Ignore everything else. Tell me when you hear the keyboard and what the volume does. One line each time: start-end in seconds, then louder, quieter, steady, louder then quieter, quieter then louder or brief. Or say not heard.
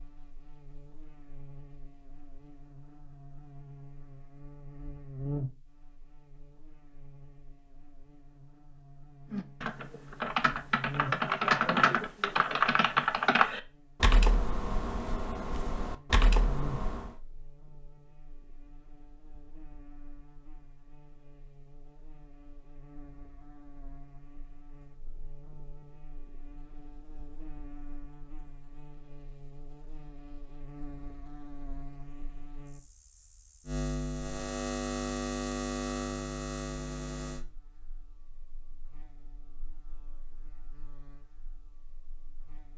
9.3-17.1 louder then quieter.